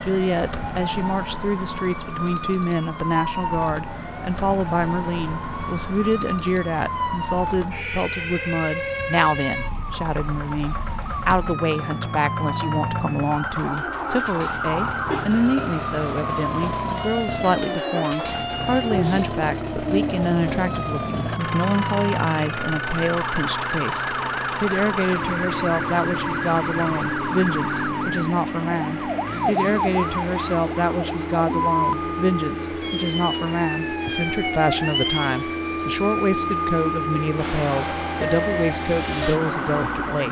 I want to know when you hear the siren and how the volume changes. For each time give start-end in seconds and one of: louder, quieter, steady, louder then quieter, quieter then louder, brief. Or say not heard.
0.0-40.2 steady.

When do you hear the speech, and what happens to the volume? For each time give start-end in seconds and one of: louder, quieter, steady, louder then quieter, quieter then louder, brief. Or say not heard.
0.0-40.2 steady.